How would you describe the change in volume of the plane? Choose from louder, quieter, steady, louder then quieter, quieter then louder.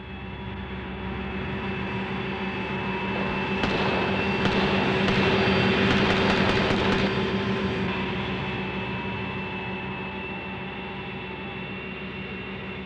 louder then quieter.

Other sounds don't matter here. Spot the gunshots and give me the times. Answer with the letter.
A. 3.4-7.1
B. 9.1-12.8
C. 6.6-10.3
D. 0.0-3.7
A.